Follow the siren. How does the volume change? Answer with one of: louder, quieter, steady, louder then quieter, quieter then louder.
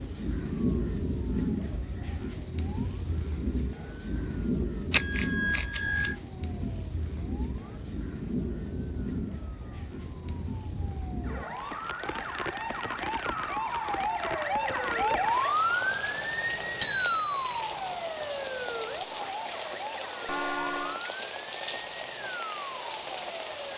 louder then quieter.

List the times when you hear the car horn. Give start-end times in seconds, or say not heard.
20.2-21.1.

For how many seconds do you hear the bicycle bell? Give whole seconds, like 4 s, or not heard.
2 s.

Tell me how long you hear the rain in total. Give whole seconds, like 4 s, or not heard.
24 s.